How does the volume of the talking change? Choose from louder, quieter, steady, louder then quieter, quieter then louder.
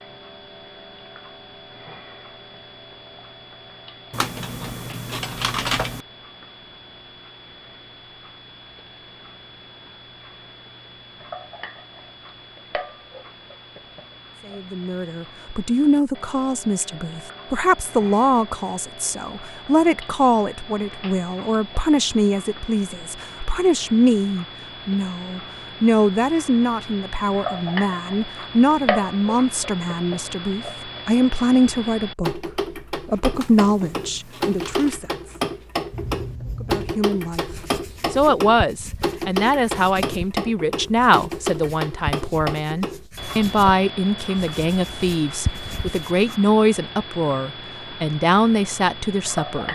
steady.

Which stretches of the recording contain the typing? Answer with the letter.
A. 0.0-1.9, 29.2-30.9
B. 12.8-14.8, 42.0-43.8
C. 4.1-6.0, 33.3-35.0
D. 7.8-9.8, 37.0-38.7
C.